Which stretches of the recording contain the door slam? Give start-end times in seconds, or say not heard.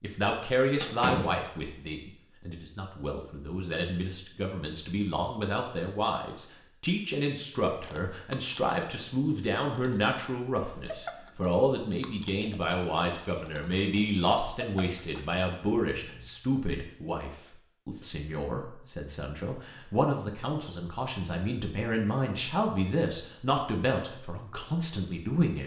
0.8-1.4.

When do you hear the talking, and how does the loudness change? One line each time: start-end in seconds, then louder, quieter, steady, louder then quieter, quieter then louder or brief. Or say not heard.
0.0-25.6 steady.